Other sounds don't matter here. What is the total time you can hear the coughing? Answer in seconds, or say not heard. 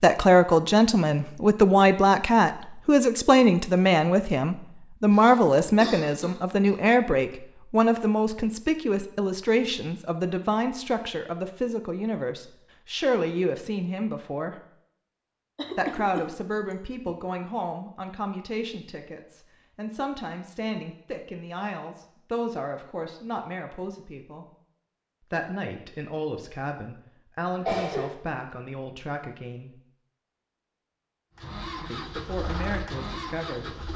3 s.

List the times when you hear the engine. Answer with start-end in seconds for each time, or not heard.
31.4-33.9.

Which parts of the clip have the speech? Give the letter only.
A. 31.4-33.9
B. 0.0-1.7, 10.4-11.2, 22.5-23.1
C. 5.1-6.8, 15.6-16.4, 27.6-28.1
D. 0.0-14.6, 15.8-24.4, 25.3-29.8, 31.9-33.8
D.